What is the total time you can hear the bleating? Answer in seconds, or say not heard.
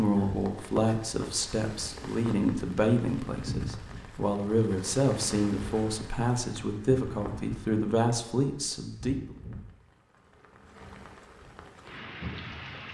not heard.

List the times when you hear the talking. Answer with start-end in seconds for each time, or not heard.
0.0-9.3.